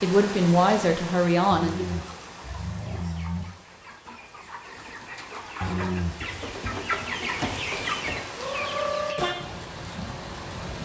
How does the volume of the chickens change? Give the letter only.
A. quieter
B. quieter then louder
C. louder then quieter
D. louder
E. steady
D.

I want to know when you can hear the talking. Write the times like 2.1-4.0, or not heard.
0.0-2.0.